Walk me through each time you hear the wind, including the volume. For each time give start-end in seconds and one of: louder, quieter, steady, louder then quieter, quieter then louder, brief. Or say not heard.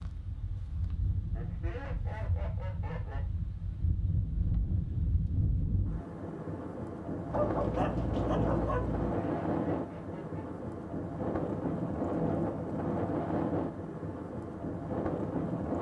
0.0-15.7 louder.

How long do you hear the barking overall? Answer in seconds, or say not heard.
2 s.